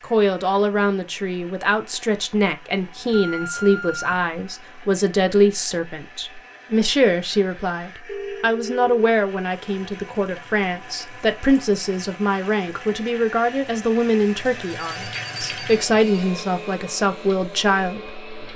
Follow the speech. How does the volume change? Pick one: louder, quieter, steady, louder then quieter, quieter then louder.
steady.